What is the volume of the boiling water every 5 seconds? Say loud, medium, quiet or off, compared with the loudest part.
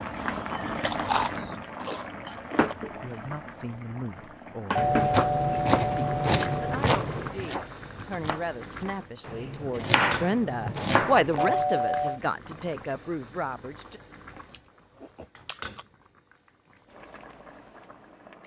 loud, medium, medium, quiet.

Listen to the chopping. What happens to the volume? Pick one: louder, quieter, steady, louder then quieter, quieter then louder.
quieter then louder.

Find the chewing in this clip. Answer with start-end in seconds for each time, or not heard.
0.1-2.8, 4.8-7.3, 9.2-11.8, 14.4-15.8.